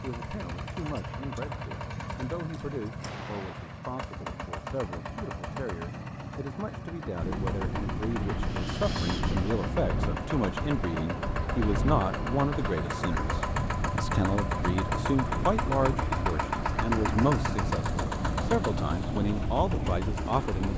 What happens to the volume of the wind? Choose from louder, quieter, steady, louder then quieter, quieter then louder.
steady.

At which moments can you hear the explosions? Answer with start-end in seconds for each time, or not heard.
3.0-4.0.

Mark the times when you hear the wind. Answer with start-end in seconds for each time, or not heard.
7.2-20.7.